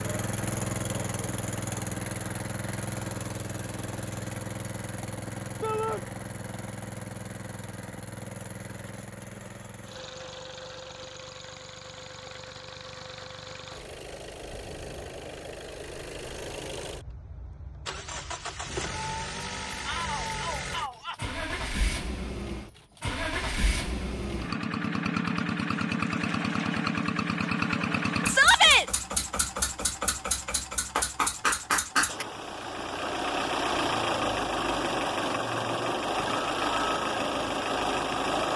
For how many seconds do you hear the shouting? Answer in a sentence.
The shouting can be heard for 2 seconds in total.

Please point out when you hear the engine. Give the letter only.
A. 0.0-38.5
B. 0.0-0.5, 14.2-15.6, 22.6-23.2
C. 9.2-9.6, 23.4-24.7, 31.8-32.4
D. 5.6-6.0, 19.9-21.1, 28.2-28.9
A.